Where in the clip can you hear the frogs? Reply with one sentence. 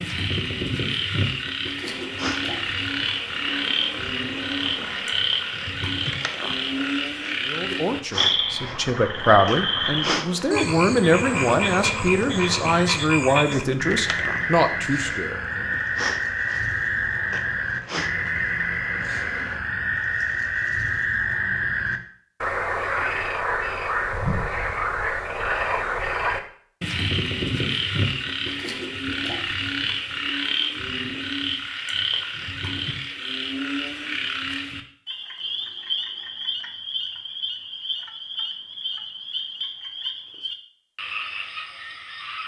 The frogs can be heard from 0.0 to 42.4 s.